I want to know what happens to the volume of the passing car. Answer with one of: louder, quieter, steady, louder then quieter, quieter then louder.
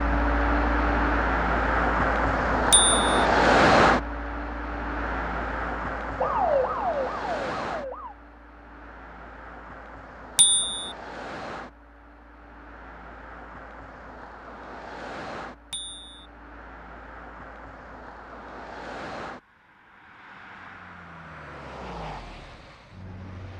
quieter.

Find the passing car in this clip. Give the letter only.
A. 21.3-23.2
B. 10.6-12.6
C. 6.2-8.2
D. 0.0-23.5
D.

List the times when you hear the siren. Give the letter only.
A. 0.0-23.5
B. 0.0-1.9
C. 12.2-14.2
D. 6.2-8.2
D.